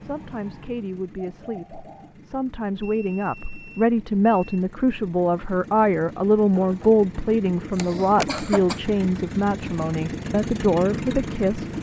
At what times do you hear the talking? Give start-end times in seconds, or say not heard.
0.0-11.7.